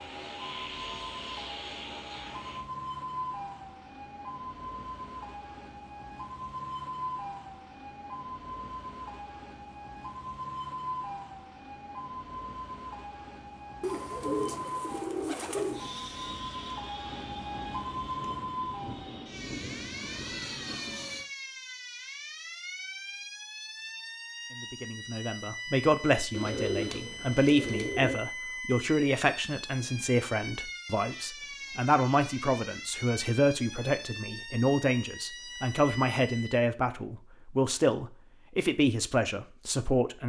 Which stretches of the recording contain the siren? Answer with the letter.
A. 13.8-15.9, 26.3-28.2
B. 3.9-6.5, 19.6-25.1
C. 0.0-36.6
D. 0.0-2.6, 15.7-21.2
C.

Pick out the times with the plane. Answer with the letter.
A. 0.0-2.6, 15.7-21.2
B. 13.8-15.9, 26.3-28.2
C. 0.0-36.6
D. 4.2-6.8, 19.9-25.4
A.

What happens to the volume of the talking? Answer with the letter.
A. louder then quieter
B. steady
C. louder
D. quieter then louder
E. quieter
B.